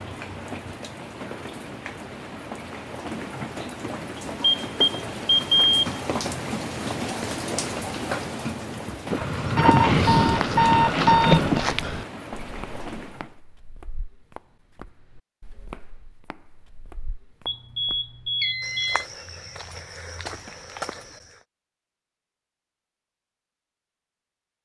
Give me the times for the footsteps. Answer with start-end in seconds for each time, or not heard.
9.8-21.4.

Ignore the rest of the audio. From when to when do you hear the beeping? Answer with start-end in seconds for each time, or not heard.
4.6-5.9, 9.1-11.6, 17.4-19.1.